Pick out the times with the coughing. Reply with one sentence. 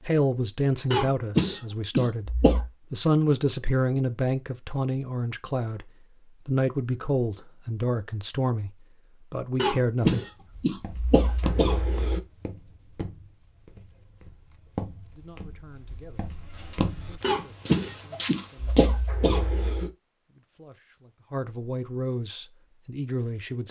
You can hear the coughing from 0.9 to 2.7 s, from 9.6 to 12.2 s and from 17.2 to 19.9 s.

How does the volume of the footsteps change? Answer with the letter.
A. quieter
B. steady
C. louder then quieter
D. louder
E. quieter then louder
E.